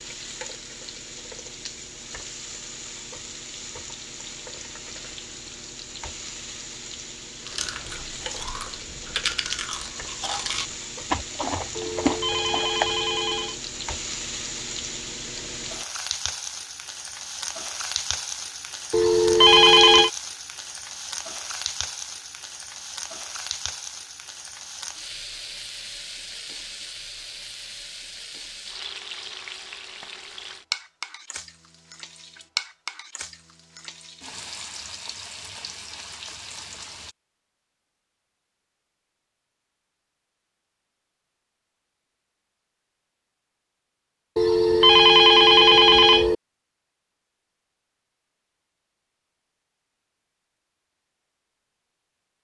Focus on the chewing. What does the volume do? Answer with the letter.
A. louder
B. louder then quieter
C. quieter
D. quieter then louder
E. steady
A.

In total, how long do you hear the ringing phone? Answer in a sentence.
The ringing phone can be heard for 5 seconds in total.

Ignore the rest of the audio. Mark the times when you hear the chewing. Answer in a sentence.
You can hear the chewing from 7.5 to 12.9 s.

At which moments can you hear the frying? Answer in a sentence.
You can hear the frying from 0.0 to 37.1 s.